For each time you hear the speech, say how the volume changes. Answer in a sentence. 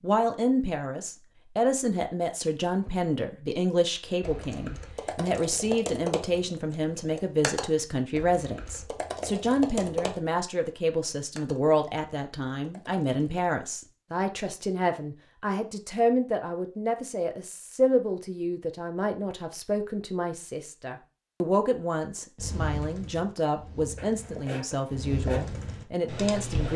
You can hear the speech from 0.0 to 26.7 s, at a steady volume.